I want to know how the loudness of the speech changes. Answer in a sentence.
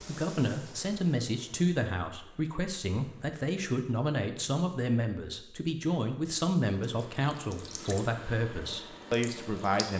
The volume of the speech stays about the same.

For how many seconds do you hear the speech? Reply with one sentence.
The speech can be heard for 10 seconds in total.